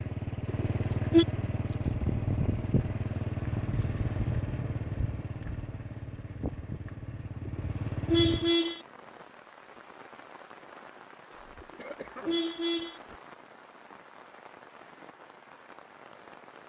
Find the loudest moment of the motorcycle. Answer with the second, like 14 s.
2 s.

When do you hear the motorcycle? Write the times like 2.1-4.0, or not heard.
0.0-8.6.